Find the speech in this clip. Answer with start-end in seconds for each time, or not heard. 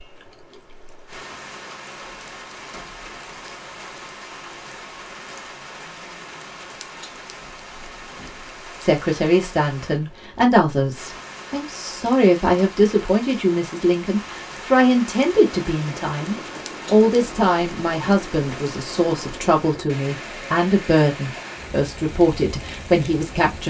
8.8-23.6.